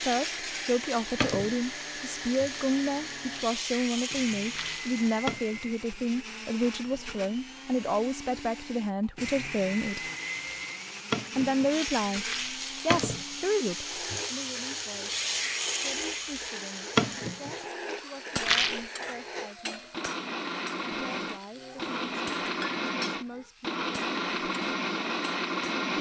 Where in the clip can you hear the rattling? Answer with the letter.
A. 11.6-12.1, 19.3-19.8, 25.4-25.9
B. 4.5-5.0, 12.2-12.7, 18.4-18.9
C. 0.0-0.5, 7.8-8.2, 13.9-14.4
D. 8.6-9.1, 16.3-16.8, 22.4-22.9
B.